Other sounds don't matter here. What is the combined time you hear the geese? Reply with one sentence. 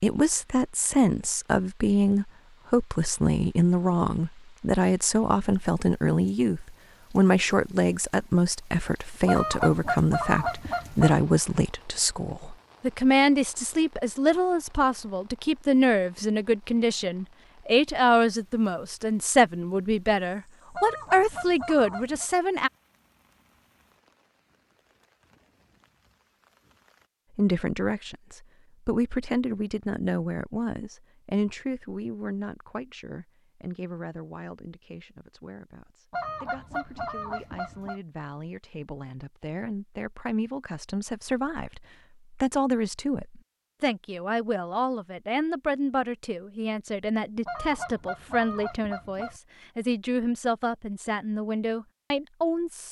The geese can be heard for 7 seconds in total.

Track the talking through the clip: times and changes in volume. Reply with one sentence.
The talking can be heard from 0.0 to 22.7 s, at a steady volume; and from 27.4 to 52.8 s, getting quieter then louder.